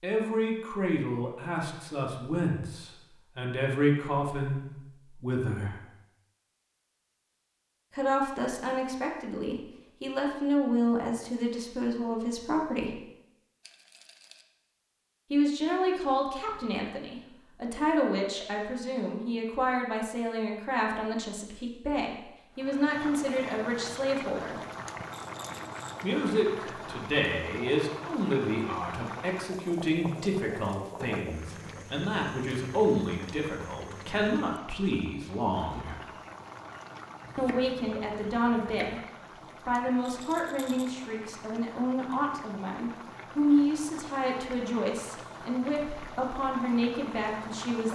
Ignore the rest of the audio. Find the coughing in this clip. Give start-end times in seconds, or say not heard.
not heard.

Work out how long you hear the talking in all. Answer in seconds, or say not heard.
40 s.